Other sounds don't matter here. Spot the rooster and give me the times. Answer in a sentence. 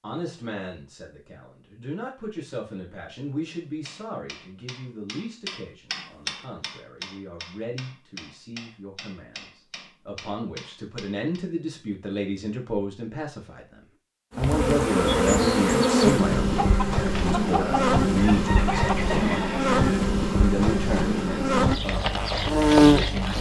The rooster can be heard from 16.6 to 19.9 s.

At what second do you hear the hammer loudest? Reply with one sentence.
The volume of the hammer peaks at 6 seconds.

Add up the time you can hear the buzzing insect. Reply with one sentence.
The buzzing insect can be heard for 9 seconds in total.